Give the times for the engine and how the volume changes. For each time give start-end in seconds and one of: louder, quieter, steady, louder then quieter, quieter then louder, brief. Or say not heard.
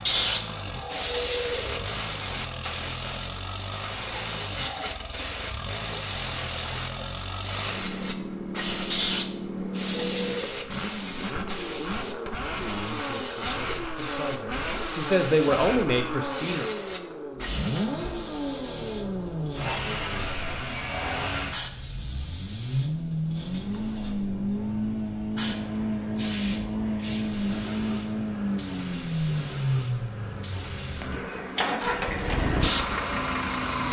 0.0-33.8 louder.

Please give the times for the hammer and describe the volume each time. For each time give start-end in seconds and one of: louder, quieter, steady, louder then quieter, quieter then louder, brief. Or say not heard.
not heard.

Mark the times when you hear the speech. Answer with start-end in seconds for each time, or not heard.
12.6-16.7.